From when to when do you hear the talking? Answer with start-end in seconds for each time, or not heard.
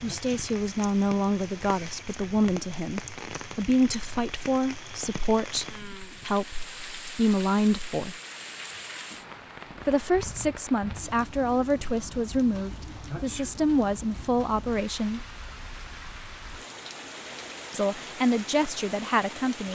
0.0-8.2, 9.8-15.2, 17.7-19.7.